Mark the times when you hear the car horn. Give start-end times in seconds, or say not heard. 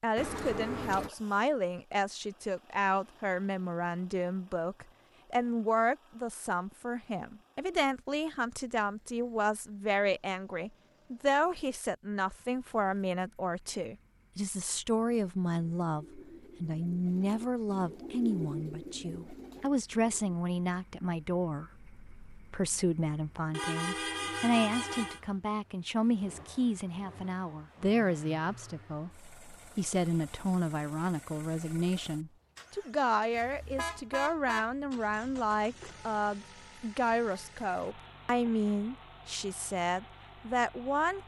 0.1-1.1, 23.5-25.2, 33.8-35.6.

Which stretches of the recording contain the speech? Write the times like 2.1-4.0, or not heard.
0.0-41.2.